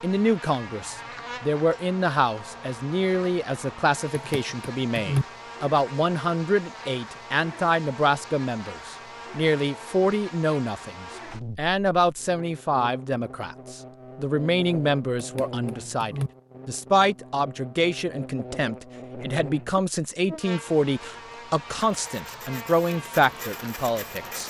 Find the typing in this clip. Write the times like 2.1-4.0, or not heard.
4.1-5.2, 15.2-16.3.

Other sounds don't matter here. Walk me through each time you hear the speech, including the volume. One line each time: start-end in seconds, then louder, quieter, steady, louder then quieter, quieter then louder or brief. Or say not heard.
0.0-24.4 steady.